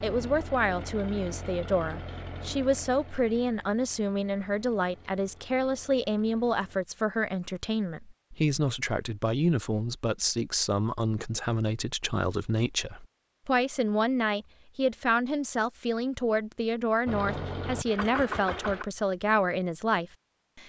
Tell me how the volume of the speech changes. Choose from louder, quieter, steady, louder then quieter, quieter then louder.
steady.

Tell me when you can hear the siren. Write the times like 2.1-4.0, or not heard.
not heard.